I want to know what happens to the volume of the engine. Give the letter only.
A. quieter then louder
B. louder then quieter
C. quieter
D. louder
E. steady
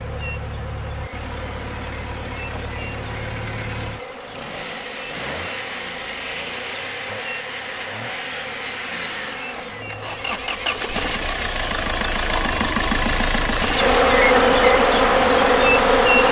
D.